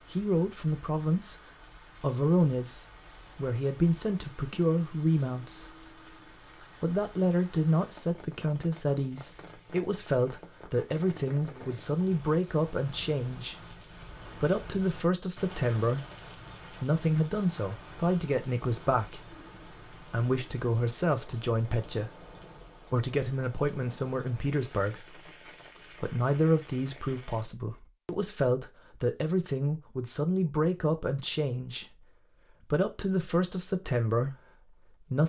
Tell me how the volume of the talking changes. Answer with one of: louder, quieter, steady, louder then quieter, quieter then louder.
steady.